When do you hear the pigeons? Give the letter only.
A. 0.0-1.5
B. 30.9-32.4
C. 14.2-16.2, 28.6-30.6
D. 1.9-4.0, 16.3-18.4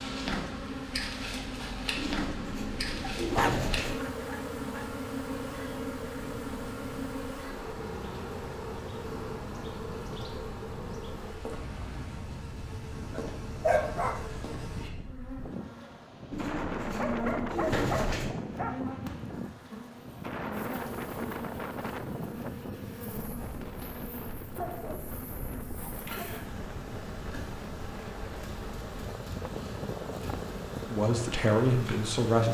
D.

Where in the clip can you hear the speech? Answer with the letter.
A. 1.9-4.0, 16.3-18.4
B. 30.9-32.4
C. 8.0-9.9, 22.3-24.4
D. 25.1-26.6
B.